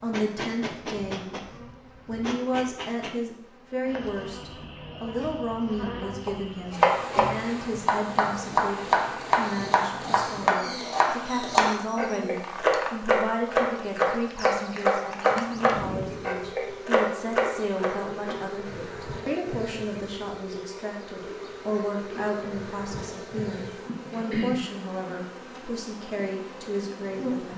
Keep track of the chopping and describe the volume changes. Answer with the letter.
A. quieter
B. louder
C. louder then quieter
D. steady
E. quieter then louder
D.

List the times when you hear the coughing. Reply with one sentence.
The coughing can't be heard in this clip.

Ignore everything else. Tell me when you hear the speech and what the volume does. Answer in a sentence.
The speech can be heard briefly from 0.0 to 1.4 s; and from 2.0 to 27.5 s, at a steady volume.